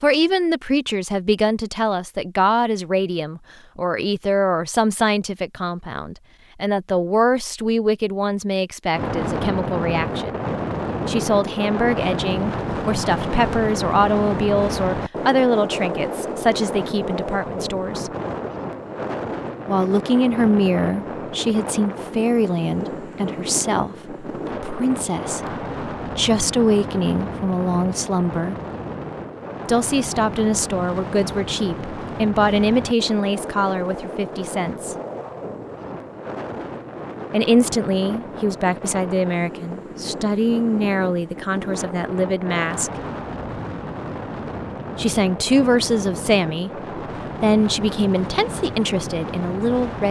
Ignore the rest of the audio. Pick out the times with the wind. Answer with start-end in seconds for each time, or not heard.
8.9-50.0.